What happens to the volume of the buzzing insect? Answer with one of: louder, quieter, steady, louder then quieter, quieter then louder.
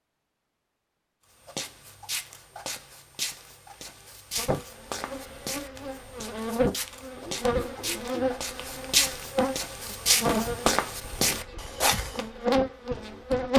louder.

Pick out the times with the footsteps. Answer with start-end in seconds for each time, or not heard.
1.4-12.2.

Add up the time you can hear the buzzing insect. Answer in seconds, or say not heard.
9 s.